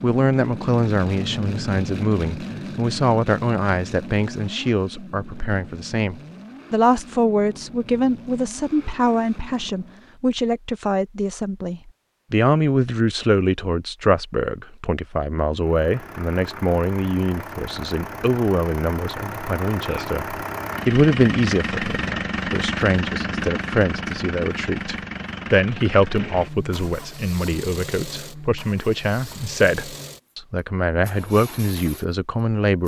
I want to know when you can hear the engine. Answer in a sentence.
The engine can be heard from 0.0 to 10.2 s and from 15.6 to 32.8 s.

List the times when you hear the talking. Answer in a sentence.
The talking can be heard from 0.0 to 32.8 s.